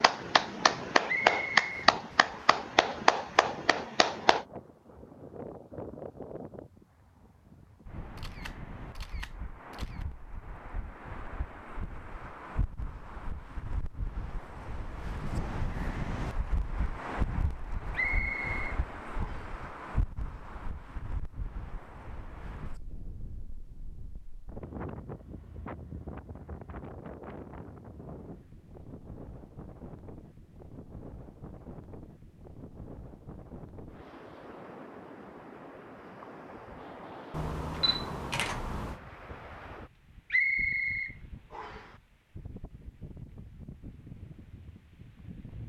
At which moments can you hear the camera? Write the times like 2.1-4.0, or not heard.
8.2-10.1, 37.3-39.0.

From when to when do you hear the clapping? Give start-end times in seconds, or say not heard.
0.0-4.5.